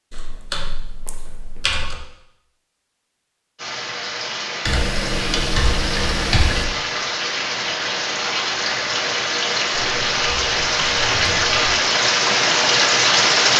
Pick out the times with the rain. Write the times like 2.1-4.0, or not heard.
3.5-13.5.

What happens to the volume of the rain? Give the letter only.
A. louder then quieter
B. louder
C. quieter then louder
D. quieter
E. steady
B.